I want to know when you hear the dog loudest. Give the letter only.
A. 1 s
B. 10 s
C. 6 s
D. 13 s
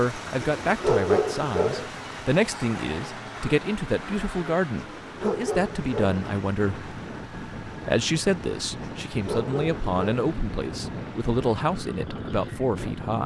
A.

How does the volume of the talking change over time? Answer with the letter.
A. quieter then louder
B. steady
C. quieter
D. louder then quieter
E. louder
B.